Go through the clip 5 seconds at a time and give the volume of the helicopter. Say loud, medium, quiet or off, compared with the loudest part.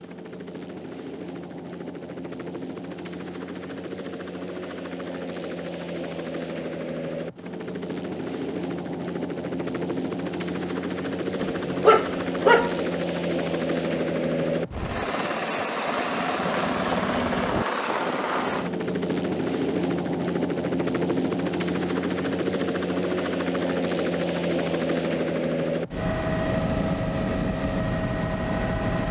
medium, medium, loud, loud, loud, loud.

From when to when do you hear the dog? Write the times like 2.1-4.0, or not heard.
11.3-12.8.